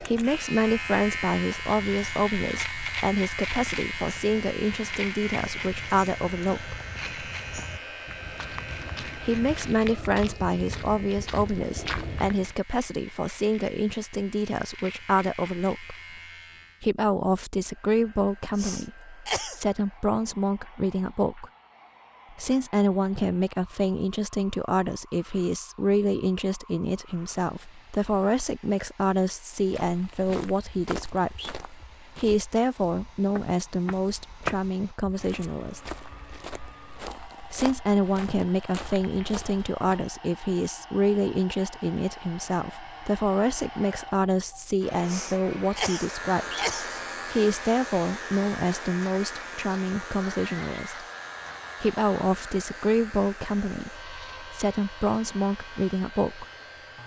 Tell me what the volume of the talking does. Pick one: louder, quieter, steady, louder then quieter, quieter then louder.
steady.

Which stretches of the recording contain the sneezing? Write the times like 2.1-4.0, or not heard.
18.6-19.6, 45.0-47.0.